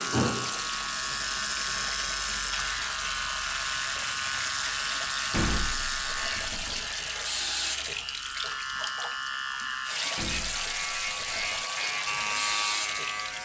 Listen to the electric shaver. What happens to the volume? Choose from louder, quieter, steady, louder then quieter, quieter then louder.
steady.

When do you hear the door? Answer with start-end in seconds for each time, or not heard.
0.1-0.6, 5.3-6.8, 10.2-11.7.